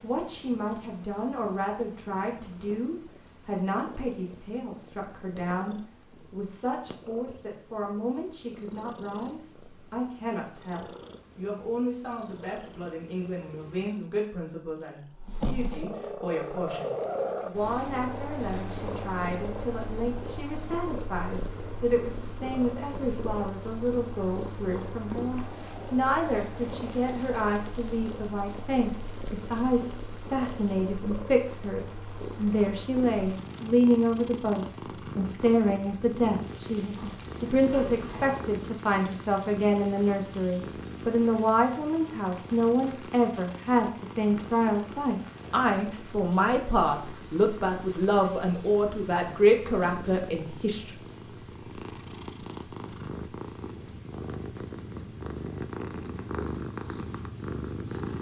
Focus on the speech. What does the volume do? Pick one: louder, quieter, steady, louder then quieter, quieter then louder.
louder.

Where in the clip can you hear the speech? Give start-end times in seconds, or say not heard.
0.0-51.0.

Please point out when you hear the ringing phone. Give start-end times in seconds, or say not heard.
not heard.